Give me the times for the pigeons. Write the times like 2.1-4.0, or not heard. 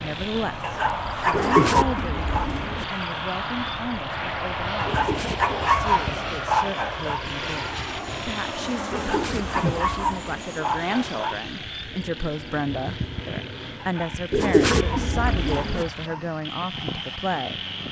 1.3-2.9, 4.8-6.2, 8.9-10.4, 14.3-15.8.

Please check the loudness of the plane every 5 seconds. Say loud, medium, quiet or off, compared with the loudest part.
loud, loud, medium, medium.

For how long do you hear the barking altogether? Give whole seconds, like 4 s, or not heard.
9 s.